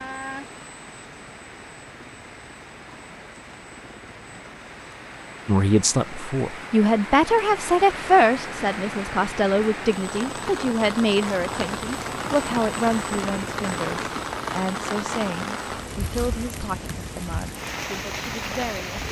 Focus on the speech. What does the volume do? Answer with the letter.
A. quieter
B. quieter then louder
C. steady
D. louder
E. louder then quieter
A.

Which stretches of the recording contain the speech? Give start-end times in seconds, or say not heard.
5.5-19.0.